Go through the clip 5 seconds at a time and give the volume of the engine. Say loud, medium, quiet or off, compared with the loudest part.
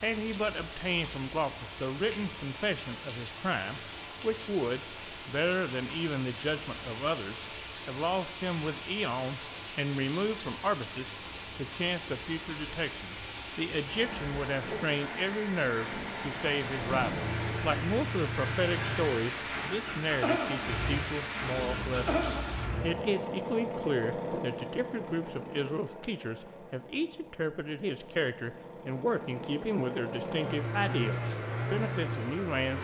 off, off, off, loud, loud, medium, loud.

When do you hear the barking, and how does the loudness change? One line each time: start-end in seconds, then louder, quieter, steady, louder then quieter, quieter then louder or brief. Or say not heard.
not heard.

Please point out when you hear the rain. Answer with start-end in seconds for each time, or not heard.
0.0-22.7.